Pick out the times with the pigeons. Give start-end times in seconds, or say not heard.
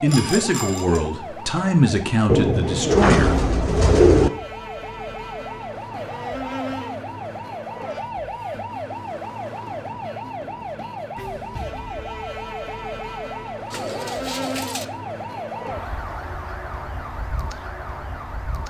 2.2-4.3, 13.7-14.8.